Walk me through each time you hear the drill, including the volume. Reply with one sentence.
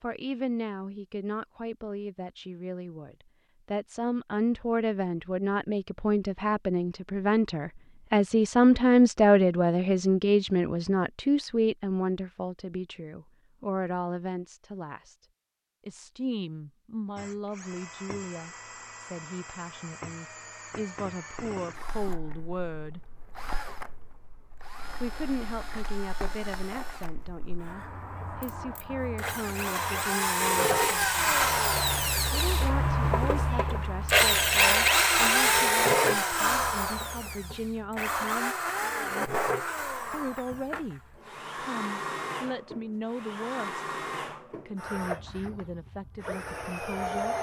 The drill can be heard from 17.1 to 47.3 s, getting louder then quieter.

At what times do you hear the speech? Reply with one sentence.
You can hear the speech from 0.0 to 15.2 s, from 15.8 to 23.0 s, from 25.0 to 31.4 s, from 32.3 to 38.5 s, from 40.1 to 43.8 s and from 44.6 to 47.3 s.